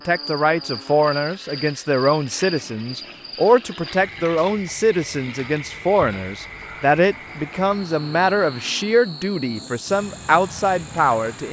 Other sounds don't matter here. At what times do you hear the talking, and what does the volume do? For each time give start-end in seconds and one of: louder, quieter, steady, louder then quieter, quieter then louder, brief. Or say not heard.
0.1-11.4 steady.